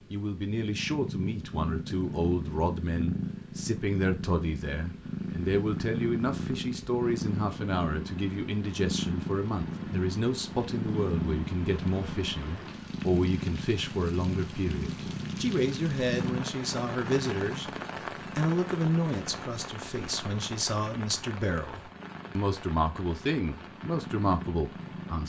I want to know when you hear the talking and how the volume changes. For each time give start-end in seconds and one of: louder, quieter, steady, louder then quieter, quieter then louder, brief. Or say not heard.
0.1-25.2 steady.